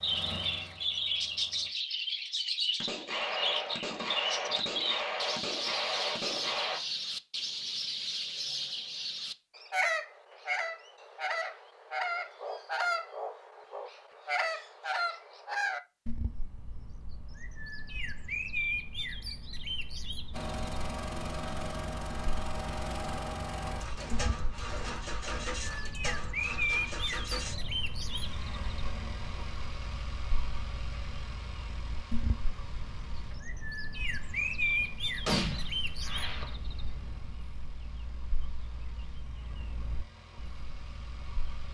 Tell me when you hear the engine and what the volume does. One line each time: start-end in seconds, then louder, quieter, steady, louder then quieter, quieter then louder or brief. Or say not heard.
0.0-1.8 brief
20.3-41.6 quieter.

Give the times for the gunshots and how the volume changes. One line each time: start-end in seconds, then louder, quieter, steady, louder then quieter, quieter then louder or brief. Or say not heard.
2.8-6.8 steady
23.9-25.4 brief
35.2-36.5 brief.